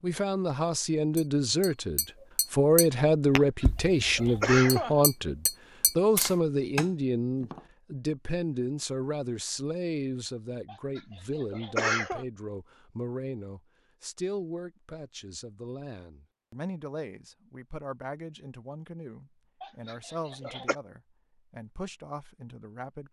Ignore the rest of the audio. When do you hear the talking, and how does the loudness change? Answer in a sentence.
The talking can be heard from 0.0 to 23.0 s, getting quieter.